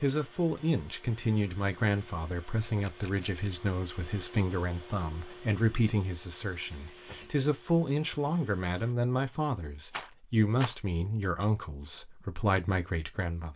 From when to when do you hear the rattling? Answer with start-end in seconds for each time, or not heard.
2.6-3.5, 9.9-10.8.